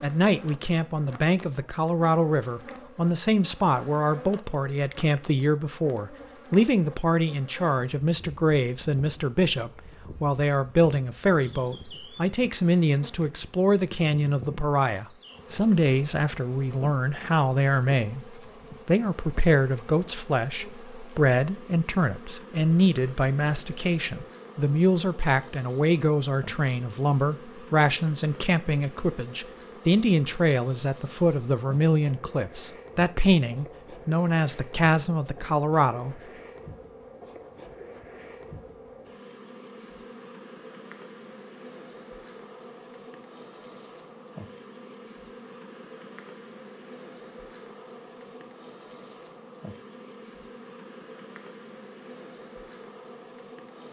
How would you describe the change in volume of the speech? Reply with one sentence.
The volume of the speech stays about the same.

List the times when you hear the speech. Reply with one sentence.
You can hear the speech from 0.0 to 18.2 s and from 18.9 to 36.1 s.